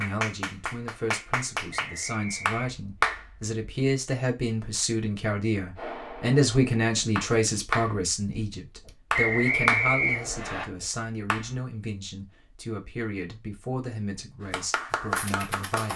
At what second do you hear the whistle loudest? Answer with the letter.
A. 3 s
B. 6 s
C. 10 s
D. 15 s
C.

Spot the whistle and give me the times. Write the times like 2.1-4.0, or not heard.
1.7-2.6, 9.1-10.7.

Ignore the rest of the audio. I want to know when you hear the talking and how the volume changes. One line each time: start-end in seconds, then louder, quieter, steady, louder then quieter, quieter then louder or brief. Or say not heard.
0.0-15.9 louder then quieter.